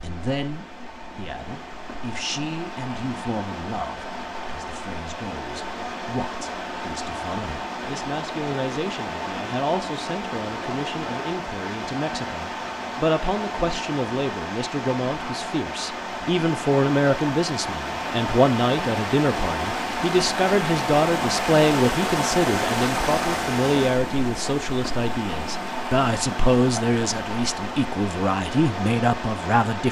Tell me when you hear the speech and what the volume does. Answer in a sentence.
The speech can be heard from 0.0 to 29.8 s, getting louder.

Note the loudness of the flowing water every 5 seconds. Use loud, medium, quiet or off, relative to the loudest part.
medium, medium, medium, loud, loud, medium.